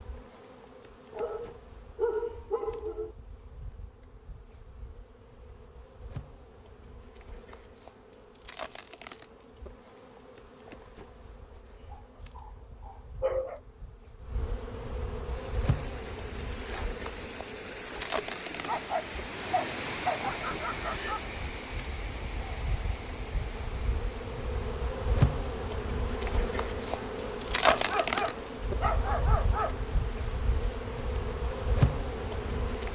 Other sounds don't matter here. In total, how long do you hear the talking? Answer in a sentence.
The talking can't be heard in this clip.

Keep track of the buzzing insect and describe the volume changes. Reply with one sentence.
The loudness of the buzzing insect goes up.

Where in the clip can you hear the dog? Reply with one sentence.
You can hear the dog from 1.1 to 3.1 s, from 11.9 to 13.6 s, from 18.6 to 21.2 s and from 27.6 to 29.9 s.